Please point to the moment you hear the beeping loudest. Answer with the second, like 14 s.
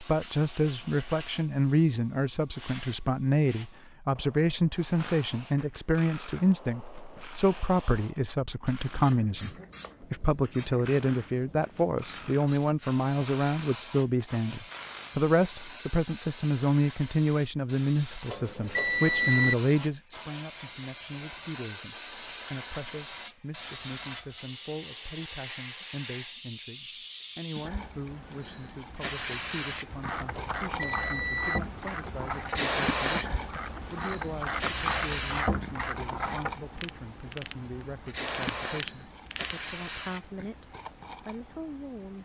19 s.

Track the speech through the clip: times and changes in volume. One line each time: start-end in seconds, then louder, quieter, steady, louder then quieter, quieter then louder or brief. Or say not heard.
0.0-42.2 quieter.